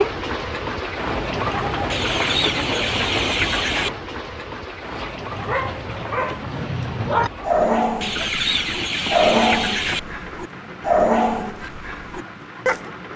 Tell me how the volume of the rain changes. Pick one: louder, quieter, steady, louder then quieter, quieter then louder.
quieter.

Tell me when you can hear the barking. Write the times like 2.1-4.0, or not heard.
4.8-12.9.